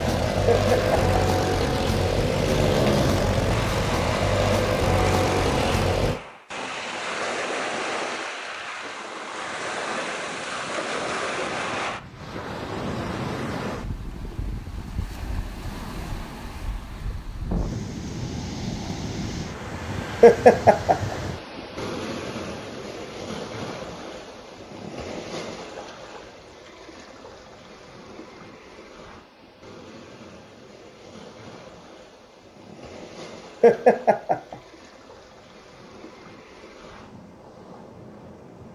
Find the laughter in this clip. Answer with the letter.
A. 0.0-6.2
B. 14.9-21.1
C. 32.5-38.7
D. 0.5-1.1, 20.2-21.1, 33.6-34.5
D.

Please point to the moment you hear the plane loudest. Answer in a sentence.
The loudest moment of the plane is at 3 seconds.